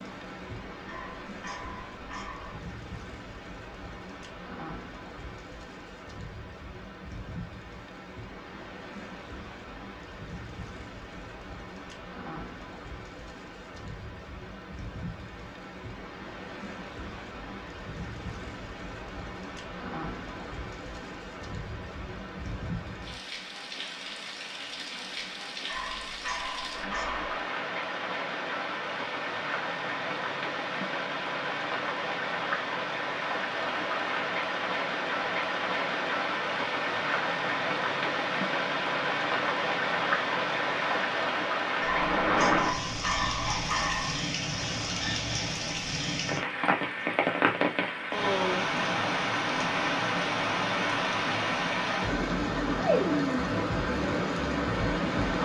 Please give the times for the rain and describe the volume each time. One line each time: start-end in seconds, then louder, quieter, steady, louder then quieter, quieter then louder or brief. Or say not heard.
0.0-55.4 louder.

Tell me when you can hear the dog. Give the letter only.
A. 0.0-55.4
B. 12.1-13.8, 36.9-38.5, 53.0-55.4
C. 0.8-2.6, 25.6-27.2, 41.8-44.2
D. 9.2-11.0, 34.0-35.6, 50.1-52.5
C.